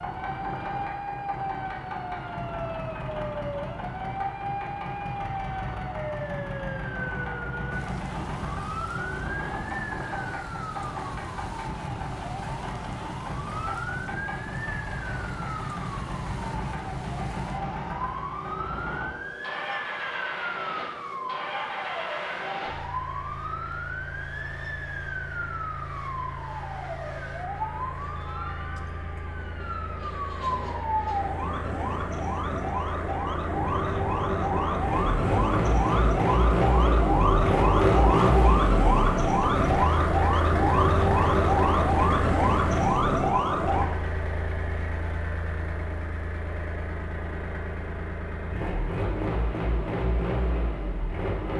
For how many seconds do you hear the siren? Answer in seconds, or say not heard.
44 s.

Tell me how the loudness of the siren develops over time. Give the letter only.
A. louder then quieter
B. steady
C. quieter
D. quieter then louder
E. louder
E.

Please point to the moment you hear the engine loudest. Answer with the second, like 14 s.
38 s.